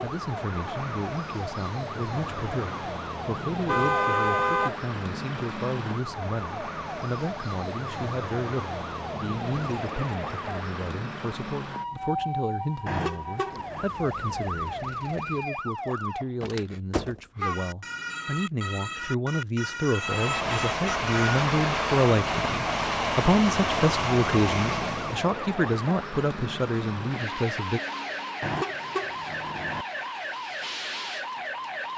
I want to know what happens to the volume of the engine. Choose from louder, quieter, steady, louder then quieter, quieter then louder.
steady.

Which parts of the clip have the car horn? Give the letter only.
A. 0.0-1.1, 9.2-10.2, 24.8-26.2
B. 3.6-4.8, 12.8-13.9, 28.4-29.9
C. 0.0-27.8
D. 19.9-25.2
B.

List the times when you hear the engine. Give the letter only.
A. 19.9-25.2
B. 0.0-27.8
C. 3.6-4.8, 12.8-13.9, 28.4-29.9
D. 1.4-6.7
A.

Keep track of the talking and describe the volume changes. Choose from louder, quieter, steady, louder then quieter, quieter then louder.
louder.